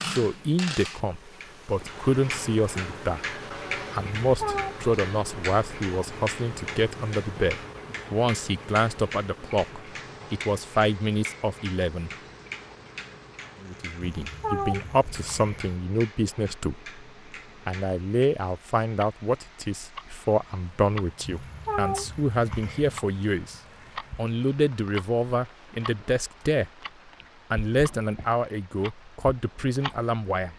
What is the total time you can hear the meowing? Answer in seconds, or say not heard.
4 s.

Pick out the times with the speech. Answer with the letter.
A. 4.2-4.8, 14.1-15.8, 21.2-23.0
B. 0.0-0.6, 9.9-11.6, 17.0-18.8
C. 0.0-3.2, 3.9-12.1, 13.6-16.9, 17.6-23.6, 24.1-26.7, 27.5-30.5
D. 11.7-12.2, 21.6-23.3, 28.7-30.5
C.